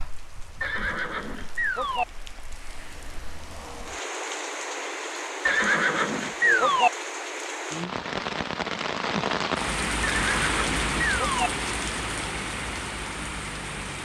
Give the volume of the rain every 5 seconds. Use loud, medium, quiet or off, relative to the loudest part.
medium, loud, loud.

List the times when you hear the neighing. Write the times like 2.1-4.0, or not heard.
0.6-2.0, 5.5-6.9, 10.0-11.5.